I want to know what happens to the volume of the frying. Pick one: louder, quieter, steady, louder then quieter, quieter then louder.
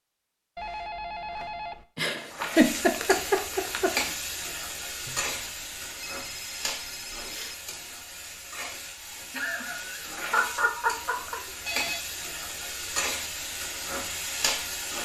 quieter then louder.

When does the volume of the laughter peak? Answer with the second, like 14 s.
3 s.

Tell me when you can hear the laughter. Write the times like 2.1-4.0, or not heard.
1.9-3.9, 9.3-11.4.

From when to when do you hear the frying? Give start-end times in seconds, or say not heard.
2.3-14.9.